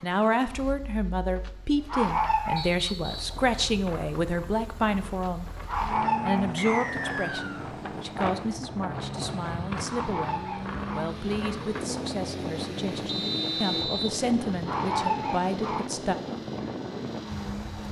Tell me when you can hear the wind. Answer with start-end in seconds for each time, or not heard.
3.0-17.8.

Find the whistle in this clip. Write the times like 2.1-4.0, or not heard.
2.5-3.2, 6.5-7.7, 13.1-14.1.